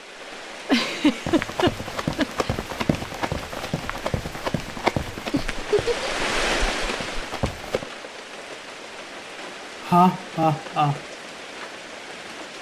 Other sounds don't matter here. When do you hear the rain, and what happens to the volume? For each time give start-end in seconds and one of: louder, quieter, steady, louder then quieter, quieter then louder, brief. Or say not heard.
0.0-12.5 louder then quieter.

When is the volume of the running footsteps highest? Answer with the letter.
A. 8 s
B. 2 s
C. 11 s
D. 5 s
D.